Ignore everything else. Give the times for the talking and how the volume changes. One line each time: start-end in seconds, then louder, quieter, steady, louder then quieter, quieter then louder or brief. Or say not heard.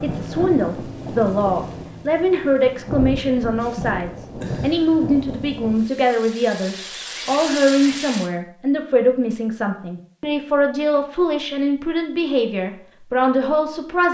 0.0-14.0 steady.